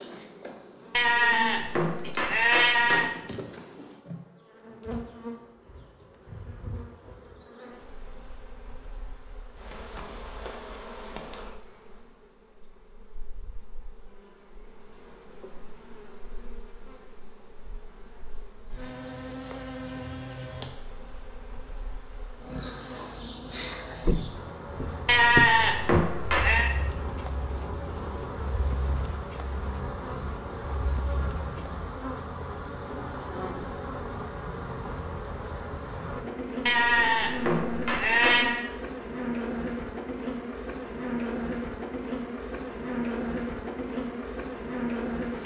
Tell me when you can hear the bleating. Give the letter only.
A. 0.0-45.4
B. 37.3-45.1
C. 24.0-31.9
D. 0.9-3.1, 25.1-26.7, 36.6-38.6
D.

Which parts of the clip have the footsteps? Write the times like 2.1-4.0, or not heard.
24.0-31.9.